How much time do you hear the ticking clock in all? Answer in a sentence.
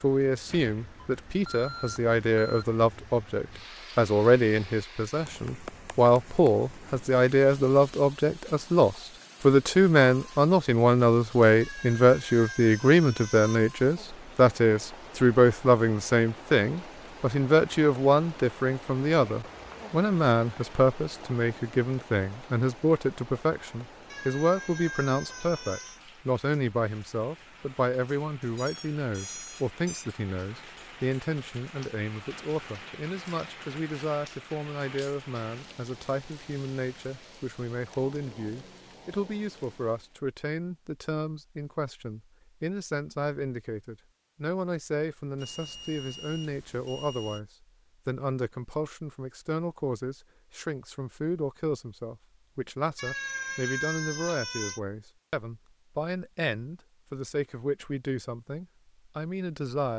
You can't hear the ticking clock here.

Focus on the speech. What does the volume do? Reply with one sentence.
The volume of the speech goes down.